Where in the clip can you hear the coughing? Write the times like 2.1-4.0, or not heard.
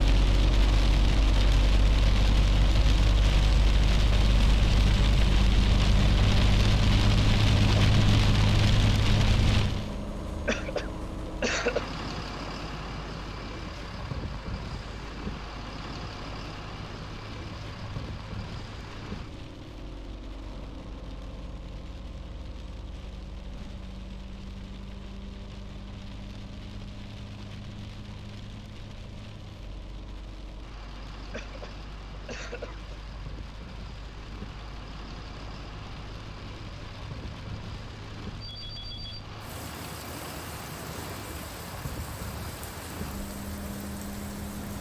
10.4-11.9, 31.3-33.0.